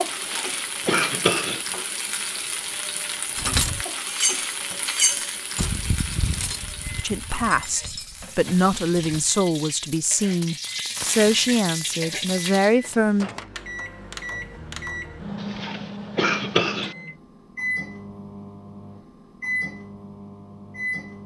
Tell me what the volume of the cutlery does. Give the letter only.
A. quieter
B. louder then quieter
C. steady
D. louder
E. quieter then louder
A.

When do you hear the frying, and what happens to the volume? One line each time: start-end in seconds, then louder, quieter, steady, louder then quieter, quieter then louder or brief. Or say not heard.
0.0-12.8 quieter then louder.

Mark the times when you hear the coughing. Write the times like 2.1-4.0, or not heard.
0.1-1.6, 15.4-16.9.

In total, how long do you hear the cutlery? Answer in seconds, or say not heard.
6 s.